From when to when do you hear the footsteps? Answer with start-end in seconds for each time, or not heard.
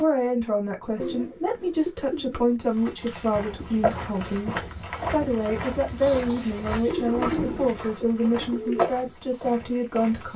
2.6-10.3.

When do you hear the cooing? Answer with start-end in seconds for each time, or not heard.
0.9-2.5, 6.8-8.9.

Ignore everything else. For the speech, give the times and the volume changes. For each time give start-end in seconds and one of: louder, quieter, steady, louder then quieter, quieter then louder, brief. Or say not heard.
0.0-10.3 steady.